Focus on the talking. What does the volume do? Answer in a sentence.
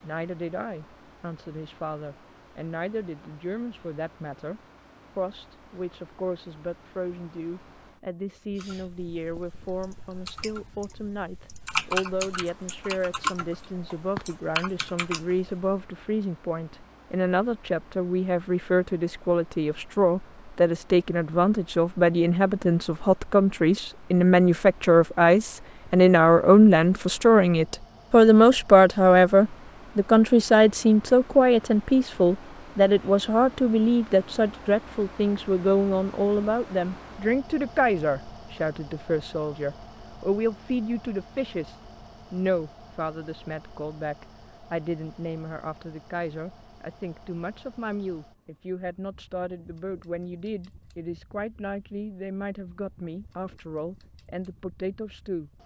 The loudness of the talking goes up, then down.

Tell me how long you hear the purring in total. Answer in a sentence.
You can't hear the purring here.